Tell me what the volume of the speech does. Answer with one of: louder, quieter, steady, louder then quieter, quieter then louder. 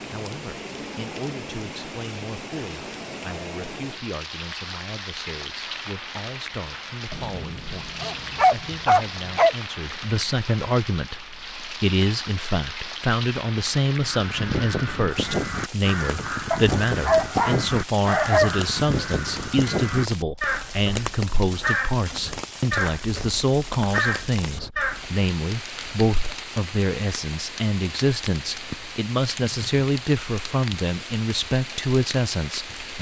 louder.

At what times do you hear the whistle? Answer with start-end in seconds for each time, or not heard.
not heard.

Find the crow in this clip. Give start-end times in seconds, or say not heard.
13.9-25.1.